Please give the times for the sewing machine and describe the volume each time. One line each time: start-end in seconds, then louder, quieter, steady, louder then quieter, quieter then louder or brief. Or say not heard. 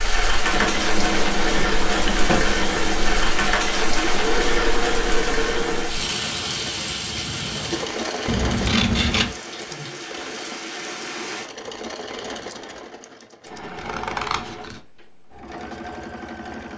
0.0-16.7 quieter.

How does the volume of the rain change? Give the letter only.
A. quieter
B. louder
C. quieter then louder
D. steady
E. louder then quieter
A.